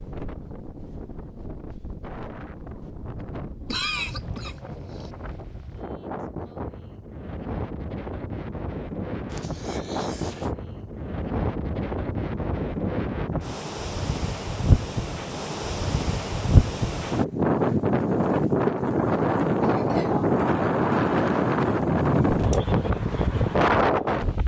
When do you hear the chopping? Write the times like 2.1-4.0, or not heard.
not heard.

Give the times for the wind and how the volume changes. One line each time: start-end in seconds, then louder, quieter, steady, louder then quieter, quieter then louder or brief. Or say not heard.
0.0-24.4 louder.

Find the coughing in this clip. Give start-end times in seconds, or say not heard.
3.6-5.1, 9.3-10.5, 19.6-20.3.